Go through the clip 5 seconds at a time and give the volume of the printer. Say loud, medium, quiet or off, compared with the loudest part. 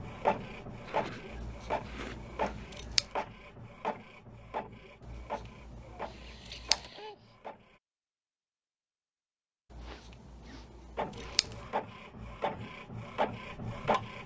loud, medium, loud.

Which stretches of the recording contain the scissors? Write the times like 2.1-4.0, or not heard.
1.2-3.0, 5.0-6.9, 9.7-11.7.